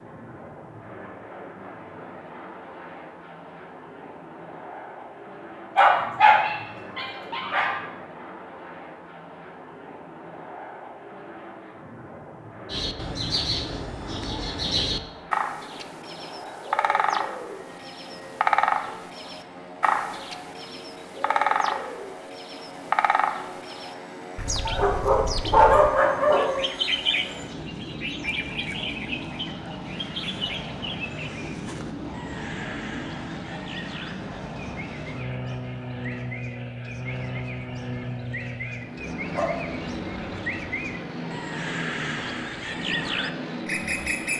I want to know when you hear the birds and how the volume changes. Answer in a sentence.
You can hear the birds from 12.7 to 44.3 s, getting quieter then louder.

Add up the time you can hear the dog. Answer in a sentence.
The dog can be heard for 5 seconds in total.